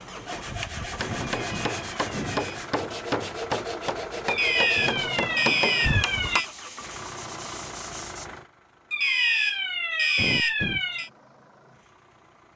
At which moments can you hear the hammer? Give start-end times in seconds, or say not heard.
0.0-6.4.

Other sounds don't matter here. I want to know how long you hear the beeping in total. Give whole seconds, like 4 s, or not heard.
6 s.